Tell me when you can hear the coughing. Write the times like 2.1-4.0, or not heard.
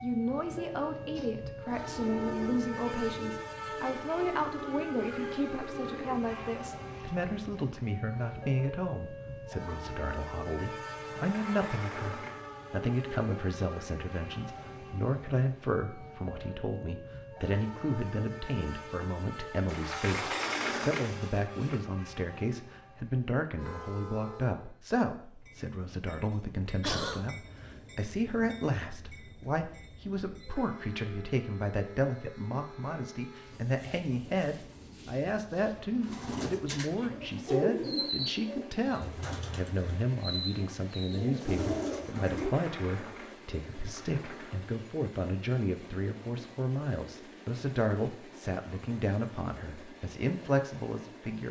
26.8-27.2.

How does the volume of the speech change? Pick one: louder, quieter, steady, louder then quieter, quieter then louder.
steady.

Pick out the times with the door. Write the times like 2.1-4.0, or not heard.
11.1-12.5, 19.6-21.9, 41.9-44.6.